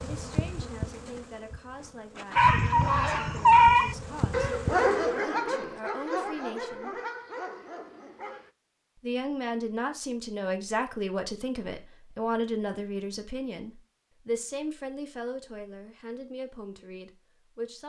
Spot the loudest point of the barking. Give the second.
4 s.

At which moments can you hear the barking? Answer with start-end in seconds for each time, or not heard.
2.4-8.5.